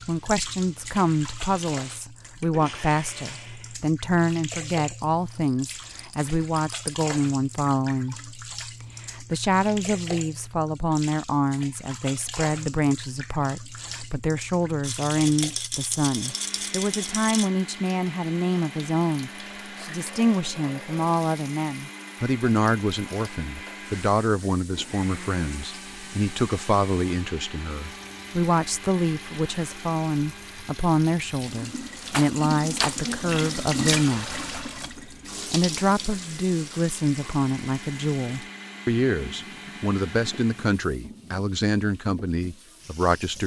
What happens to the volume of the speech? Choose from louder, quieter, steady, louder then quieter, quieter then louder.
steady.